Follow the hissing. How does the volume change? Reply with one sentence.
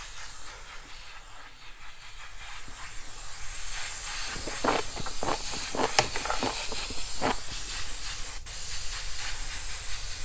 The volume of the hissing goes up.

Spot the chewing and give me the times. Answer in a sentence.
The chewing can be heard from 4.3 to 7.5 s.